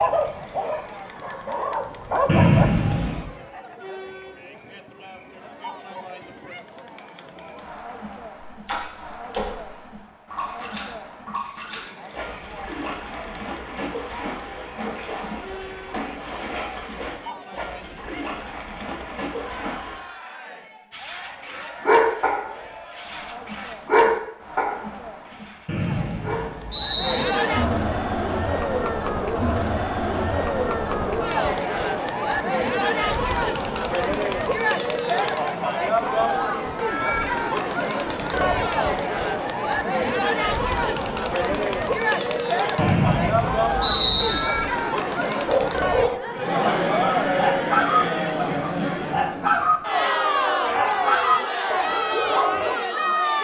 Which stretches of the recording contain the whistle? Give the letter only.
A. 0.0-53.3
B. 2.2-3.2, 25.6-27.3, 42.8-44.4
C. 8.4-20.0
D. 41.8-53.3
B.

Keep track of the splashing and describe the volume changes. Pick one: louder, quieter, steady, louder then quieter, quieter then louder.
steady.